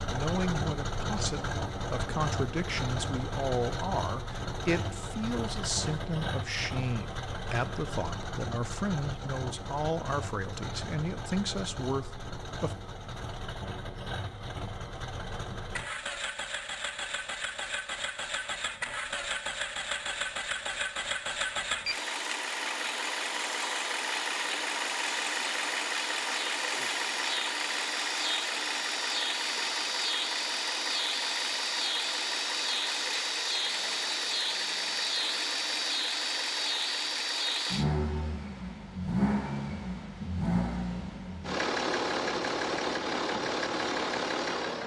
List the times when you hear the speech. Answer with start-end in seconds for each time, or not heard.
0.1-12.8.